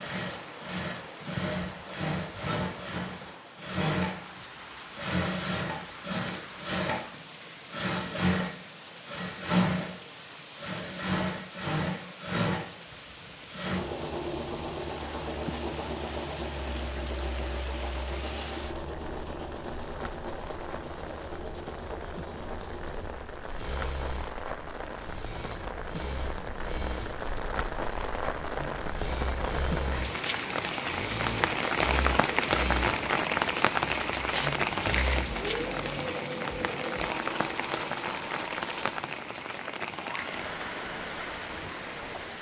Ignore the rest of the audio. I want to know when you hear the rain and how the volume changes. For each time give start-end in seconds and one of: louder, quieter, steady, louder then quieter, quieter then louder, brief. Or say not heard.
0.0-42.3 louder.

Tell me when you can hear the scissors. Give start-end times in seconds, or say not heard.
not heard.